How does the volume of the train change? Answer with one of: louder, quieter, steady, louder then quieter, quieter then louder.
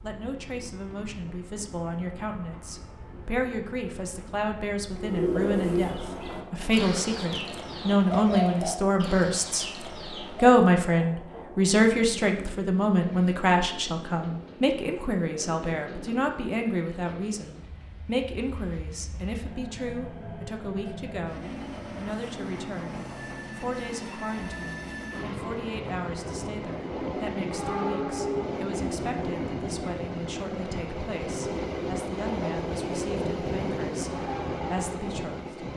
louder.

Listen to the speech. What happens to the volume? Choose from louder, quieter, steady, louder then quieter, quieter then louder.
louder then quieter.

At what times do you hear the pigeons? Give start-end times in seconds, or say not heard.
5.0-10.6.